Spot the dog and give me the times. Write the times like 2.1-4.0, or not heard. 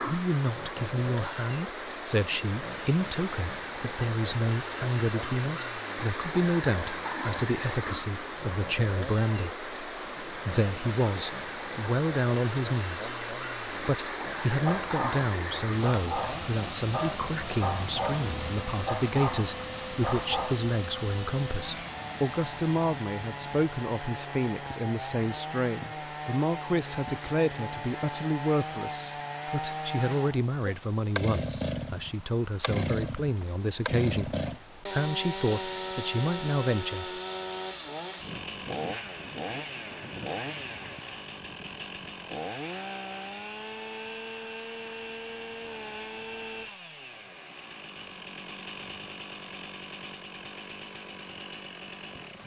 14.7-20.6.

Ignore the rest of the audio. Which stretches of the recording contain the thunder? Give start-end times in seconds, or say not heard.
not heard.